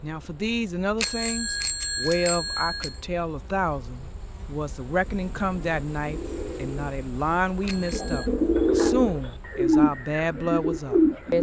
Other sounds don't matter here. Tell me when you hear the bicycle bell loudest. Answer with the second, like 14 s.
2 s.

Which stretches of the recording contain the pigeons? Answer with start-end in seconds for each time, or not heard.
5.0-11.3.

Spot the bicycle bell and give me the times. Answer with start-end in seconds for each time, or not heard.
1.0-3.0, 7.7-8.3.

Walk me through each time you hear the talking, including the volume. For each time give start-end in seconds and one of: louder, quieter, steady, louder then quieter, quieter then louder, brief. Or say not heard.
0.0-11.3 steady.